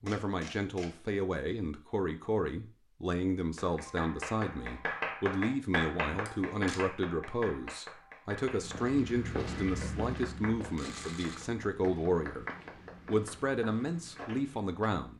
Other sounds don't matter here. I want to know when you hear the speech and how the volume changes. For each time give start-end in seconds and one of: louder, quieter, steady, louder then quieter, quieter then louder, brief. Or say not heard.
0.0-12.4 steady
13.1-15.1 brief.